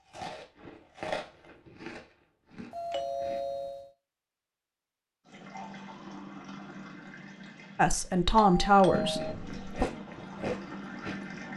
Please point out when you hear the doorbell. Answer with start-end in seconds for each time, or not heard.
2.7-3.9, 8.3-9.3.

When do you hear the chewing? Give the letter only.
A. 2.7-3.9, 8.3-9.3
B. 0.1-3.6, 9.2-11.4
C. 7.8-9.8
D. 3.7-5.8
B.